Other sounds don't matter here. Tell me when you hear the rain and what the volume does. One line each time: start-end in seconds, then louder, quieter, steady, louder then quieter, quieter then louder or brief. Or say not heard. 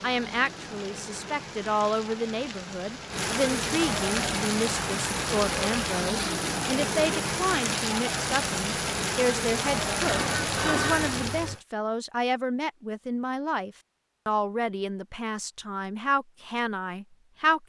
0.0-11.6 louder.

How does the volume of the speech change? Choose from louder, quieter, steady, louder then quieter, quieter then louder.
steady.